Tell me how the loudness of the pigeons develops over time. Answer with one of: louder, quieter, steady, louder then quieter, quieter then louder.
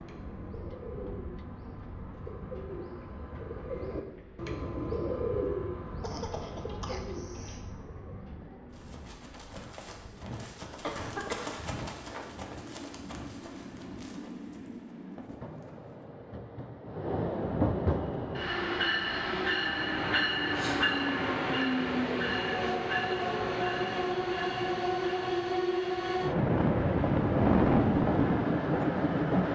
louder then quieter.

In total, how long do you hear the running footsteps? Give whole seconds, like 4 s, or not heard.
7 s.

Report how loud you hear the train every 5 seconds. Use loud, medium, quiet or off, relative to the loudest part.
quiet, quiet, quiet, medium, loud, loud.